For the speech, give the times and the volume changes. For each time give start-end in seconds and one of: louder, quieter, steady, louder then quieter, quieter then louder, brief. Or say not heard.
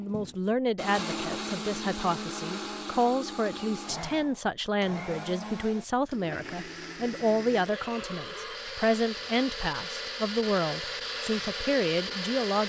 0.0-12.6 steady.